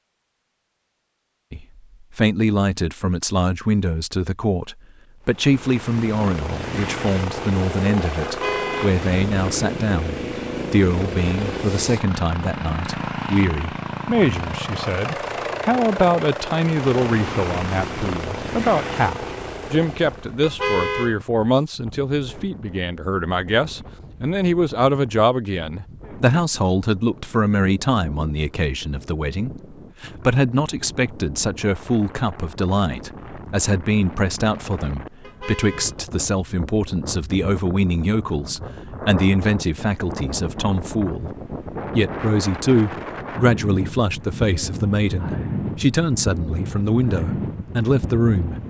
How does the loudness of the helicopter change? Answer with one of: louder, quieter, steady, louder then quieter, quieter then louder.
steady.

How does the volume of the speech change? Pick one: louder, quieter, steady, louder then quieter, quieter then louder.
steady.